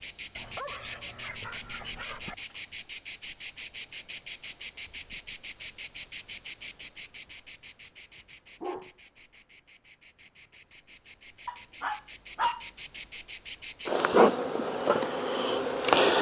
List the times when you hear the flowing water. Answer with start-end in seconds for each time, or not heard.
not heard.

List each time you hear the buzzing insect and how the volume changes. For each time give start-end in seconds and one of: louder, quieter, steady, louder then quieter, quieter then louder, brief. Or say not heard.
0.0-16.1 quieter then louder.